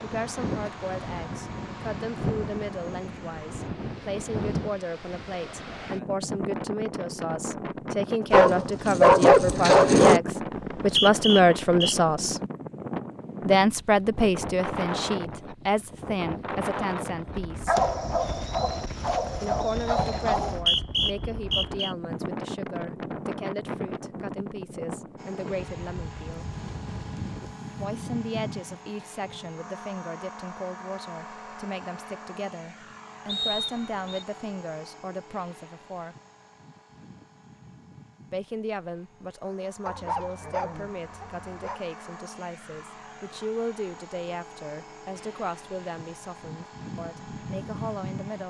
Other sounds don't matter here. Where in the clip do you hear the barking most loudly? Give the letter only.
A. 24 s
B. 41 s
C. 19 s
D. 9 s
D.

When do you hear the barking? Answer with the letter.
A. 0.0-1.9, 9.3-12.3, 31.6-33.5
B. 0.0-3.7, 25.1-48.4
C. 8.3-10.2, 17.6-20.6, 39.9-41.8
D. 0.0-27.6
C.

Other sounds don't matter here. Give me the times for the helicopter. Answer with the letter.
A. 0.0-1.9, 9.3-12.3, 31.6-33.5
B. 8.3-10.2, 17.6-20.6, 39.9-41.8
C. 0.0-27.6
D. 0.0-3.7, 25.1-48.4
D.